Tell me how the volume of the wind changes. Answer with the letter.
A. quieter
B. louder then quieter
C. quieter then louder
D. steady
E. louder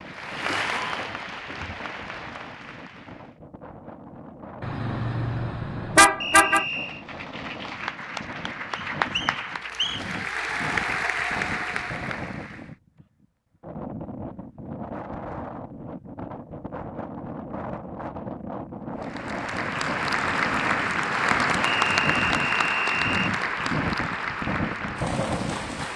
E.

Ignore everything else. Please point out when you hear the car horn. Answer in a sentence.
You can hear the car horn from 4.6 to 6.7 s.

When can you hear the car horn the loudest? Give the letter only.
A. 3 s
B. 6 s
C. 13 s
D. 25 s
B.